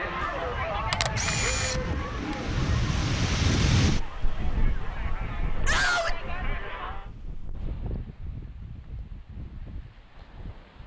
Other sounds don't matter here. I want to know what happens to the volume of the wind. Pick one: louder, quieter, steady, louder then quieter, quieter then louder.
louder then quieter.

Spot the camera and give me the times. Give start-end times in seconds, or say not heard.
0.9-2.4.